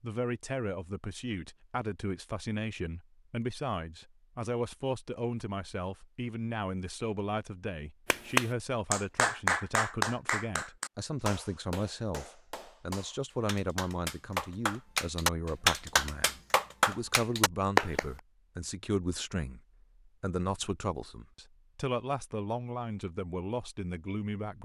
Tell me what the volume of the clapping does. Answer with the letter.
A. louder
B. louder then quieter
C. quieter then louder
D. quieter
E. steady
C.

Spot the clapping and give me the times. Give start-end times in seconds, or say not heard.
8.1-18.1.